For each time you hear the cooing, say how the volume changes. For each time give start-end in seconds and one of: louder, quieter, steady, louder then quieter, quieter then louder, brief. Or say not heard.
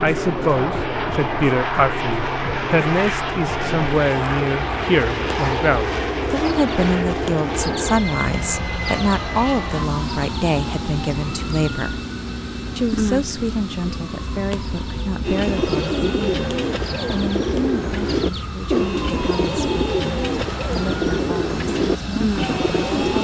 15.2-23.1 steady.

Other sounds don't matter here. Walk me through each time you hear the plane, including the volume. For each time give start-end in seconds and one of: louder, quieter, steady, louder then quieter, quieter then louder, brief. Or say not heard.
0.0-23.1 quieter.